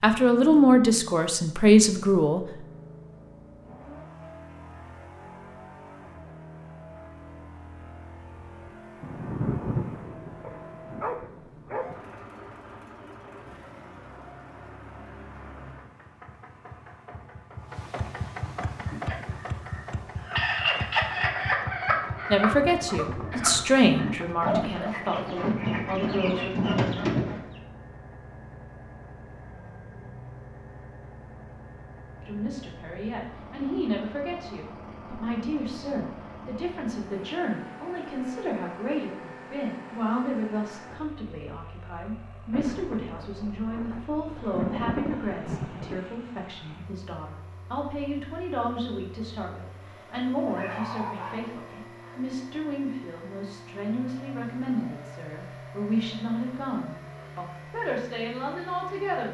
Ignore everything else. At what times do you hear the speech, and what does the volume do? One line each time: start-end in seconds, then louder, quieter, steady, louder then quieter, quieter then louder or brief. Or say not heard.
0.0-2.4 brief
22.3-26.5 louder then quieter
32.2-59.3 steady.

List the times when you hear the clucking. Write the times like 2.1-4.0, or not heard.
18.8-27.4.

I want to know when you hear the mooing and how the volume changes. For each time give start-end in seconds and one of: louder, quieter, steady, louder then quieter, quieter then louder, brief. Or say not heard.
not heard.